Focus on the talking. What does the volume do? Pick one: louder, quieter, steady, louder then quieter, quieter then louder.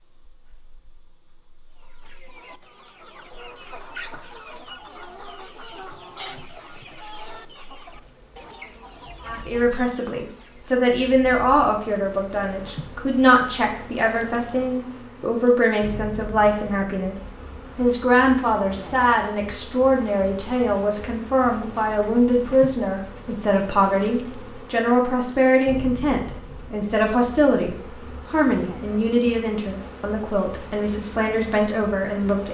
steady.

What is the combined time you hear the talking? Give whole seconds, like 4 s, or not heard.
23 s.